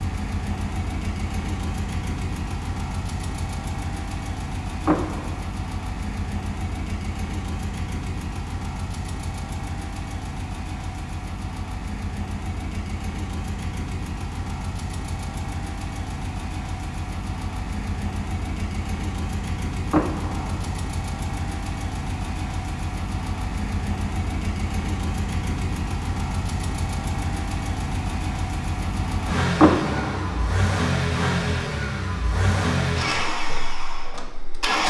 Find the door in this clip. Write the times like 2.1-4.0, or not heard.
4.8-5.4, 19.9-20.8, 29.6-30.4.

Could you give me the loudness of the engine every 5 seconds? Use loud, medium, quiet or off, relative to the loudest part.
medium, medium, medium, medium, medium, loud, loud.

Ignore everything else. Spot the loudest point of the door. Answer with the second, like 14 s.
30 s.